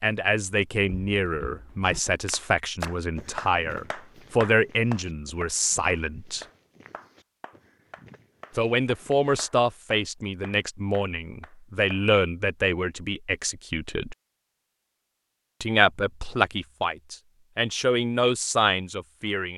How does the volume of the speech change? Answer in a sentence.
The loudness of the speech stays about the same.